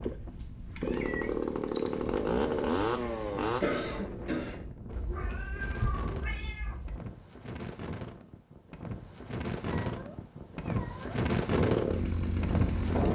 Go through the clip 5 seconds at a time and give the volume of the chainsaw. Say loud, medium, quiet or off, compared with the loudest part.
loud, off, loud.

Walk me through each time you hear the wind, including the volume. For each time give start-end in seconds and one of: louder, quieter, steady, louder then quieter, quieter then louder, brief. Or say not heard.
0.0-13.1 louder.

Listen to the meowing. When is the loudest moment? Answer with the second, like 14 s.
6 s.